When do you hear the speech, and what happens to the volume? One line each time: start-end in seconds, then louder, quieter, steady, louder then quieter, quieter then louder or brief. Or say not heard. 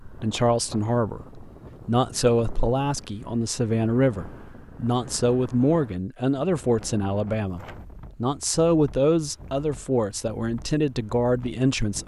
0.0-12.0 steady.